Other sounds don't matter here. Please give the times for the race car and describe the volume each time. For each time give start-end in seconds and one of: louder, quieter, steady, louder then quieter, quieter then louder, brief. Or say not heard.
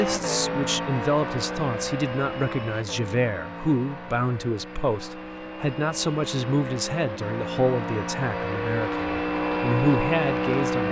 0.0-10.8 quieter then louder.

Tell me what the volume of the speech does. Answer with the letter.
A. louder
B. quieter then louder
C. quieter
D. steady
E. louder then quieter
D.